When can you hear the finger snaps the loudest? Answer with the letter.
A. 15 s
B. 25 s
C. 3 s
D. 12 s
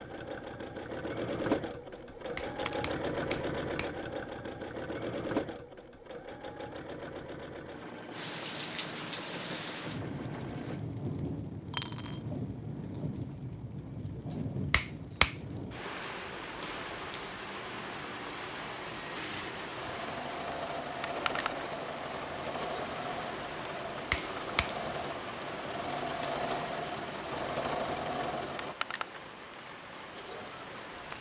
A.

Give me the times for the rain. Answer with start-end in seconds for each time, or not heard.
8.1-31.1.